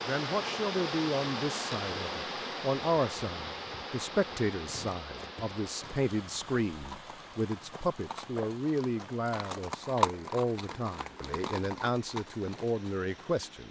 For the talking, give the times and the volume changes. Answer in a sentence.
You can hear the talking from 0.1 to 13.6 s, at a steady volume.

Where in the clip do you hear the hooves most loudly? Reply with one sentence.
The volume of the hooves peaks at 10 seconds.